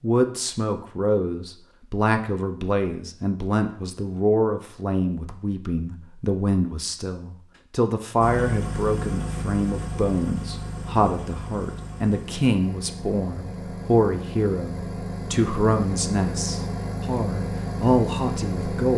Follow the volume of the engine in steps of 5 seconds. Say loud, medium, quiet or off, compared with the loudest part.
off, loud, medium, loud.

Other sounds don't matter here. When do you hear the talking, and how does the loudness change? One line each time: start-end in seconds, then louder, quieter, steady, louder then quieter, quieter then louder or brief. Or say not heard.
0.0-18.9 steady.